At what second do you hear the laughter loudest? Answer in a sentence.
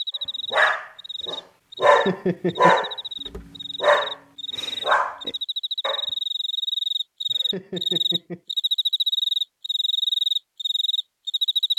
The volume of the laughter peaks at 2 seconds.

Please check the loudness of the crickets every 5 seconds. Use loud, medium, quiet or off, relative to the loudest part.
medium, loud, loud.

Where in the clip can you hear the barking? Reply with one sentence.
You can hear the barking from 0.5 to 6.0 s.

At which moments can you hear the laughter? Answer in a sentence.
You can hear the laughter from 1.9 to 2.9 s and from 7.3 to 8.4 s.